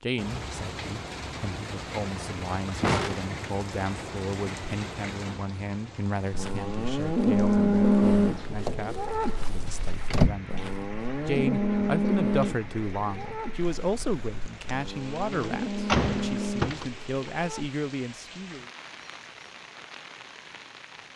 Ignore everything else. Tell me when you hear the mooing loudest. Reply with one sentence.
The loudest moment of the mooing is at 8 seconds.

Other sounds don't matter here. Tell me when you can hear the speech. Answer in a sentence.
You can hear the speech from 0.0 to 18.6 s.